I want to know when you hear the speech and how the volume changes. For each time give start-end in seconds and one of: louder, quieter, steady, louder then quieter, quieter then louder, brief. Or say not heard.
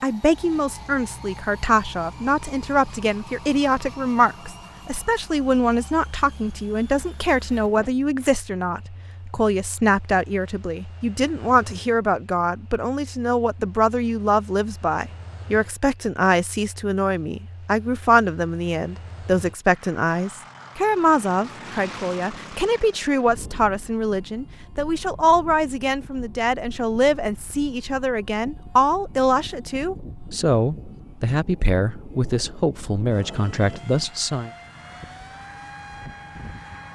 0.0-34.5 steady.